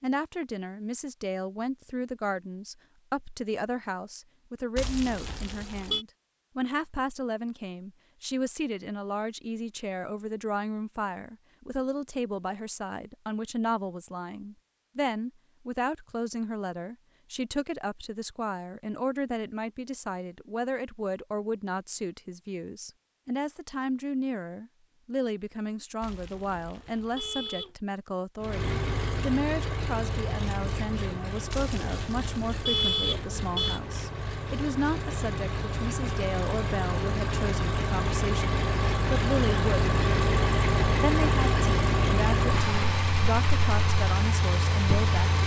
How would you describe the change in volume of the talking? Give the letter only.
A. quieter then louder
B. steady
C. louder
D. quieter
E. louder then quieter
B.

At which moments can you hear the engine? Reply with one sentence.
The engine can be heard from 28.4 to 45.4 s.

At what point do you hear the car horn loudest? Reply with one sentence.
The volume of the car horn peaks at 33 seconds.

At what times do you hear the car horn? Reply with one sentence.
You can hear the car horn from 4.8 to 6.0 s, from 26.0 to 27.7 s and from 31.5 to 33.8 s.